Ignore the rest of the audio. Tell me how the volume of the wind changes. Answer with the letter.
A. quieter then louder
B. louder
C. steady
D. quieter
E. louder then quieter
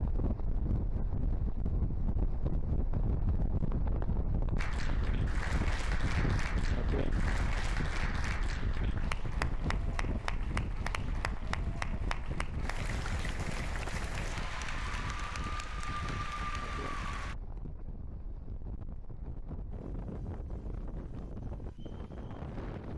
D.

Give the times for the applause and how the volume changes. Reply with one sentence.
You can hear the applause from 4.5 to 17.4 s, at a steady volume.